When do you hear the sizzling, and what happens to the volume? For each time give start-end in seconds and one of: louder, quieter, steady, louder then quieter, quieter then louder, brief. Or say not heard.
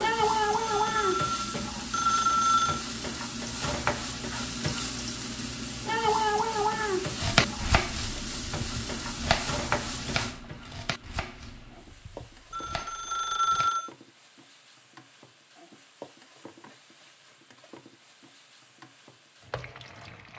0.0-20.3 quieter.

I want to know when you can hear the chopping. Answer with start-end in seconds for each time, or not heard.
7.2-13.7.